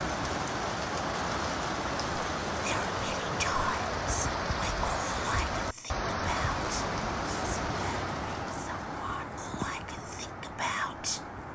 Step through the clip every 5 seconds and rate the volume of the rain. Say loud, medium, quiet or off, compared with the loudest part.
loud, loud, medium.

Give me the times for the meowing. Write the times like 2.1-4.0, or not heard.
not heard.